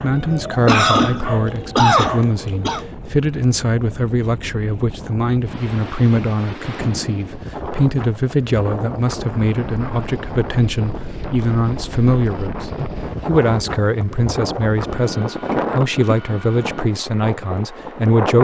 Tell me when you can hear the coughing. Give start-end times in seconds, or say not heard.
0.7-2.8, 15.5-16.4.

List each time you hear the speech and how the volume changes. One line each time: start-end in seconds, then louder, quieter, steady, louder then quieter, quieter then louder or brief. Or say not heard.
0.0-18.3 steady.